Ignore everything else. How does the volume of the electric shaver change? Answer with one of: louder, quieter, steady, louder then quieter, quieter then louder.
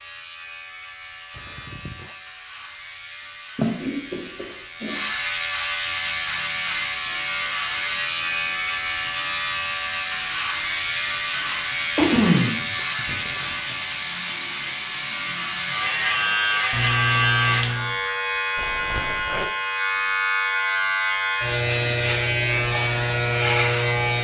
louder.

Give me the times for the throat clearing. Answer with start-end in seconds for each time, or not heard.
3.5-5.0, 11.9-13.2, 16.7-17.9.